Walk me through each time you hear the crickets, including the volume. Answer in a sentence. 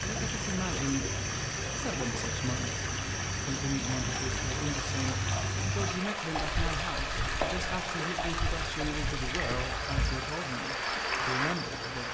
The crickets can be heard from 0.0 to 12.0 s, getting quieter then louder.